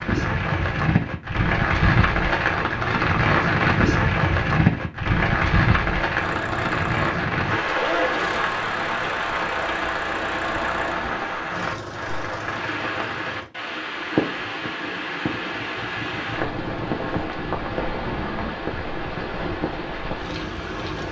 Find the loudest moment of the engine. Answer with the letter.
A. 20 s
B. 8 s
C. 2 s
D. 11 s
B.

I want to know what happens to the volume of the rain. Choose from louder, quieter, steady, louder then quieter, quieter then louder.
quieter.